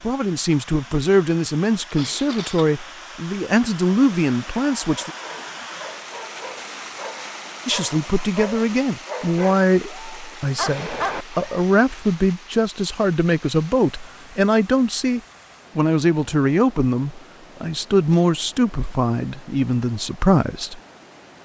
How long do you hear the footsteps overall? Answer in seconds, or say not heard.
not heard.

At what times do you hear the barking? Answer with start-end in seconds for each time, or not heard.
4.8-11.7.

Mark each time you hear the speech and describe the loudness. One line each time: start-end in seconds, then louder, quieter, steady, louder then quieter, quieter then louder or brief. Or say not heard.
0.0-5.1 steady
7.7-20.8 steady.